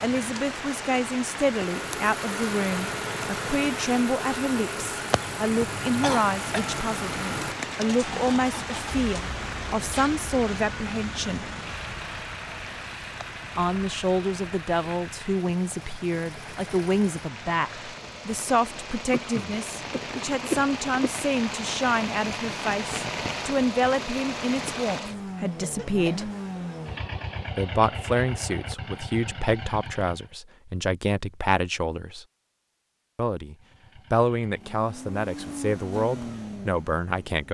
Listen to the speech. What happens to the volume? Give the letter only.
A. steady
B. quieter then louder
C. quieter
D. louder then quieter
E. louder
A.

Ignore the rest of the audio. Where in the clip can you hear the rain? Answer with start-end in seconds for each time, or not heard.
0.0-25.0.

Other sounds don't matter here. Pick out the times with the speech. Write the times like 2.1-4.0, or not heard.
0.0-11.5, 13.6-26.3, 27.6-32.2, 33.1-37.4.